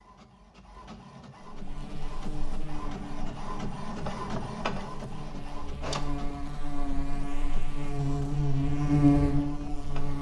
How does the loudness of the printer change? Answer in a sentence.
The loudness of the printer goes up, then down.